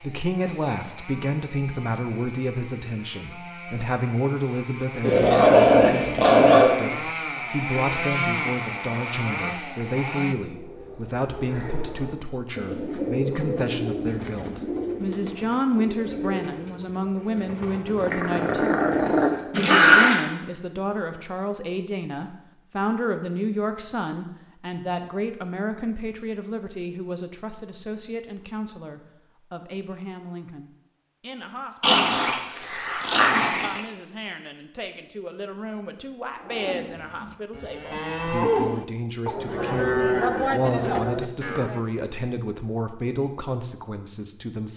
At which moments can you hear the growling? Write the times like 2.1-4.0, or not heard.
5.0-6.8, 18.0-20.2, 31.8-33.8.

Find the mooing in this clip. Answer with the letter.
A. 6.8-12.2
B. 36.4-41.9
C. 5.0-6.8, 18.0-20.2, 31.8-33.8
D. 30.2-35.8
B.